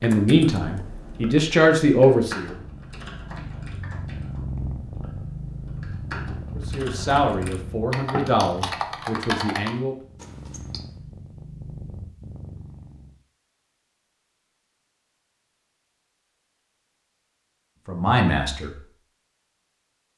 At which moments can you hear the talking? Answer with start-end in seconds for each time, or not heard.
0.0-2.5, 6.5-9.9, 17.9-18.9.